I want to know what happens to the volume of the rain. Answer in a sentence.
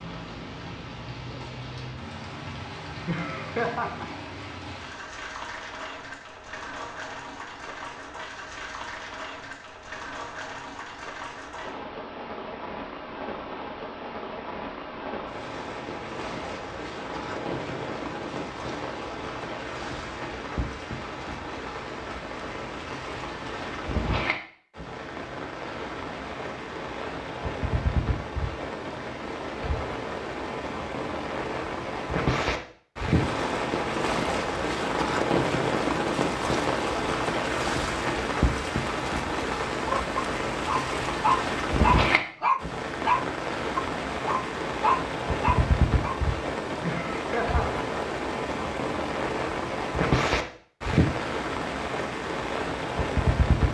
The volume of the rain goes up.